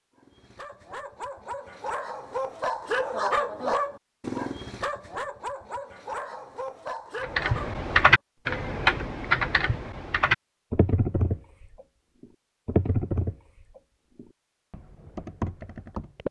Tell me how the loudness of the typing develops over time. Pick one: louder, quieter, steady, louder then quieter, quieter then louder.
quieter.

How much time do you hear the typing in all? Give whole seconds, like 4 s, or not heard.
9 s.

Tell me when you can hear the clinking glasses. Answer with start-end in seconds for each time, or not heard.
not heard.